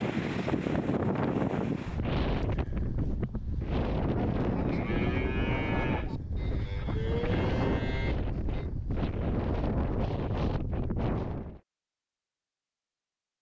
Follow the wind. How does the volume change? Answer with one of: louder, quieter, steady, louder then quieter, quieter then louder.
steady.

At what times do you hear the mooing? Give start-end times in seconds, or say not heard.
3.4-8.7.